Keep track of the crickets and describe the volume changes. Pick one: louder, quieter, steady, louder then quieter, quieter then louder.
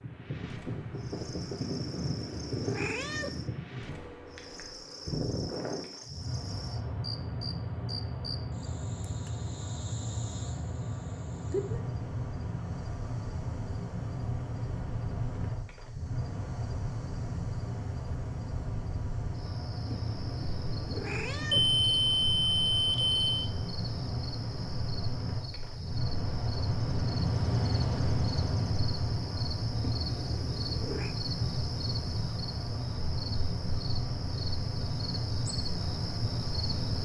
louder.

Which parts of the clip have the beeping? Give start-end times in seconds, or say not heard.
21.5-23.4.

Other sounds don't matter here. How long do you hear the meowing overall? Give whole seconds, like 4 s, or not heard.
5 s.